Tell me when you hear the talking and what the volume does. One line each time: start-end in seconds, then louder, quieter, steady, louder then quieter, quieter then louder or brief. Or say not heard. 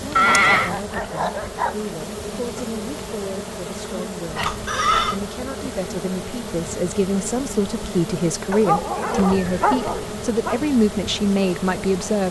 0.0-12.2 louder.